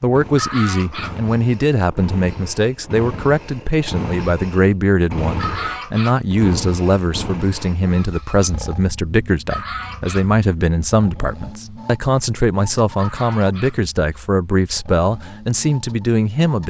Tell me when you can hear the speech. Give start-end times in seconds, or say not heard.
0.0-16.6.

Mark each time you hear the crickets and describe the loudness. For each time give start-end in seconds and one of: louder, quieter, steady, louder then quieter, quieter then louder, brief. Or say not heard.
not heard.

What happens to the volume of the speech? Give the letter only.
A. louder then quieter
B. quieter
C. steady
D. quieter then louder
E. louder
C.